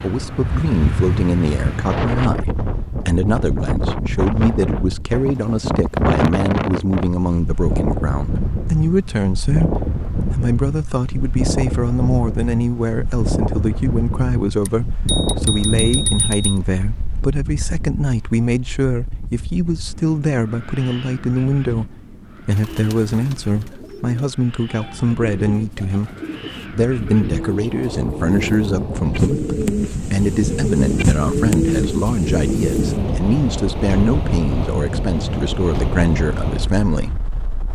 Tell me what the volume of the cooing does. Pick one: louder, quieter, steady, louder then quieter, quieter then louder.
louder.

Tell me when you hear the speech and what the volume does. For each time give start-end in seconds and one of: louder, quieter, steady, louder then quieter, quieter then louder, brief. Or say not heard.
0.0-37.1 steady.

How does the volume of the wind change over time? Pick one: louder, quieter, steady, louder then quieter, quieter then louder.
quieter then louder.